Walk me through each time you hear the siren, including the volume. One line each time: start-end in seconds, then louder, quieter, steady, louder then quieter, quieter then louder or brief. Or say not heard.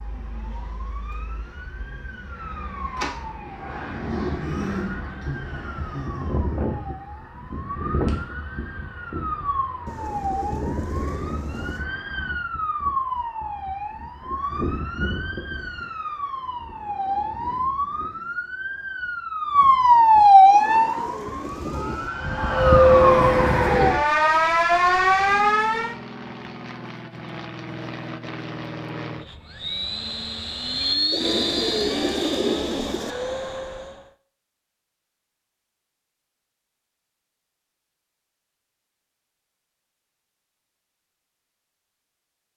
0.0-25.9 louder.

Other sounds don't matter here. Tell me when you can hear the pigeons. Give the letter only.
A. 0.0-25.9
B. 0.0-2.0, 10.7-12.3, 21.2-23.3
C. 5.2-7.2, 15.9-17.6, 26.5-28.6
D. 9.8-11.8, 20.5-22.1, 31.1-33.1
D.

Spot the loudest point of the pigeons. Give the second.
32 s.